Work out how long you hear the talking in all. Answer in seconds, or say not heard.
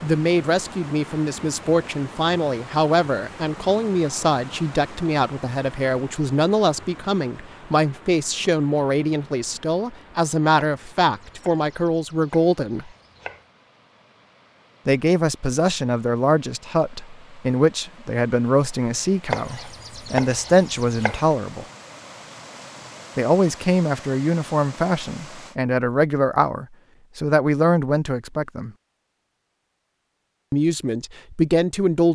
27 s.